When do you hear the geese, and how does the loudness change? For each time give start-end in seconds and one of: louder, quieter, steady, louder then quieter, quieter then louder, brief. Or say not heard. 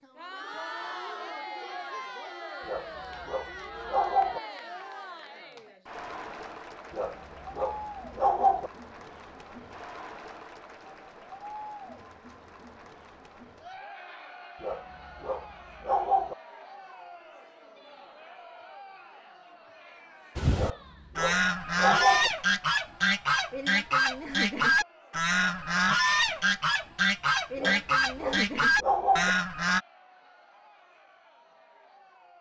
20.4-29.8 steady.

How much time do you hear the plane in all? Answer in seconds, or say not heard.
not heard.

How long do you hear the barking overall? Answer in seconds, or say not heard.
9 s.